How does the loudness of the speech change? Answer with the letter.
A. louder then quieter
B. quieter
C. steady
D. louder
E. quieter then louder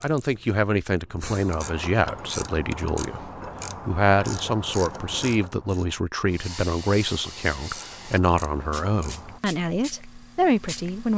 C.